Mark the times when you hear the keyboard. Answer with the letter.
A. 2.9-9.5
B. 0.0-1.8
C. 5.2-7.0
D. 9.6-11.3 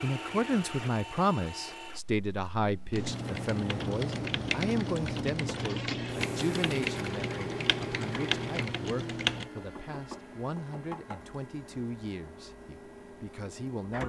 A.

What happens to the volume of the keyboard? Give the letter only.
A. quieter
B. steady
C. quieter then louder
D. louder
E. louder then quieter
B.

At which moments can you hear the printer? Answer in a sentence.
You can hear the printer from 0.0 to 14.0 s.